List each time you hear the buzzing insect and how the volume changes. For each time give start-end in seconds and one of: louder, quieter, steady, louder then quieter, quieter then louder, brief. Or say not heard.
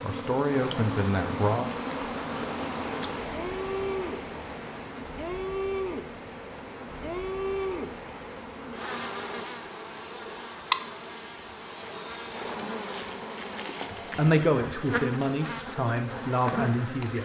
0.0-17.2 steady.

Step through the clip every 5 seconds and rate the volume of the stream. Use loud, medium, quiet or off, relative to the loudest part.
loud, medium, off, off.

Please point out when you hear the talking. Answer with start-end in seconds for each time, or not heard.
0.0-1.7, 14.2-17.2.